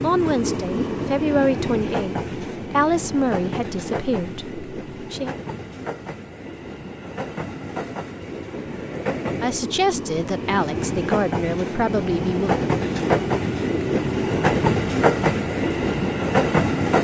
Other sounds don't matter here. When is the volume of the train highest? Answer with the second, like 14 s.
15 s.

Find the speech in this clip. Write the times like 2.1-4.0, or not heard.
0.0-5.3, 9.4-12.6.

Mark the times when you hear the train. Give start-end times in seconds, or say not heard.
0.0-16.9.